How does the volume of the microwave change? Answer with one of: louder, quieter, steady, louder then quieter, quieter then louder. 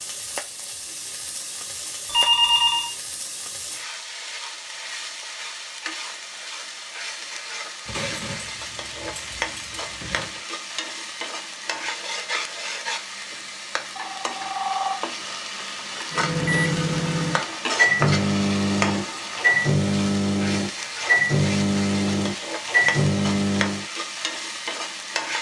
steady.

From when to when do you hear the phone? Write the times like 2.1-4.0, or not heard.
2.0-2.9, 13.8-14.9.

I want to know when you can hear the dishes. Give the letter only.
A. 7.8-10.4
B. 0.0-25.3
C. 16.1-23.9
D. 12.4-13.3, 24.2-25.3
A.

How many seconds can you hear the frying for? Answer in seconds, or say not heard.
25 s.